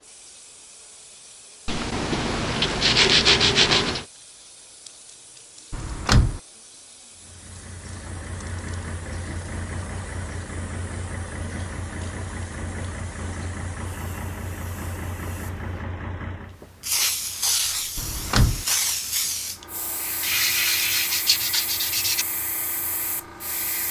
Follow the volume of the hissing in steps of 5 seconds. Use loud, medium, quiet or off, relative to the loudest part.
quiet, quiet, quiet, loud, medium.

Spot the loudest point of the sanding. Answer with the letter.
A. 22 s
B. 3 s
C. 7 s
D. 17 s
B.